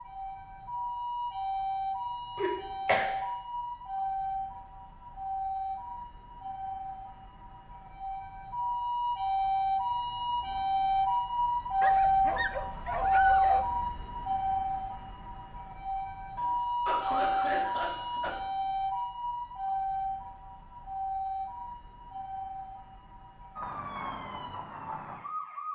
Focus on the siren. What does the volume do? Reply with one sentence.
The volume of the siren goes up, then down.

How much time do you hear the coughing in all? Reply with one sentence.
You can hear the coughing for 3 seconds altogether.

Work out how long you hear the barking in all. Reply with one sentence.
The barking can be heard for 2 seconds in total.